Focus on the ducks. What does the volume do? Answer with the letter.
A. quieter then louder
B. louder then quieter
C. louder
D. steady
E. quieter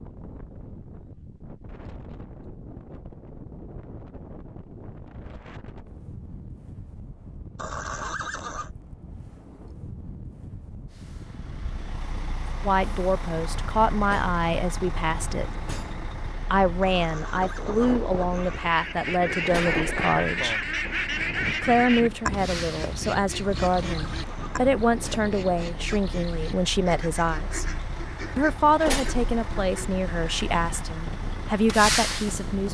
E.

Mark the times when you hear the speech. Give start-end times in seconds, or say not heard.
12.7-15.5, 16.5-20.6, 21.6-27.6, 28.4-32.6.